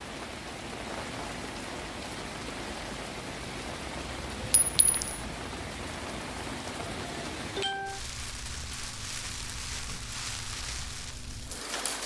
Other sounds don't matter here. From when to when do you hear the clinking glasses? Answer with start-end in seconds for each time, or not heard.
4.5-5.2.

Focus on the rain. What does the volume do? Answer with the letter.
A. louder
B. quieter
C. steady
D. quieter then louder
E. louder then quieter
C.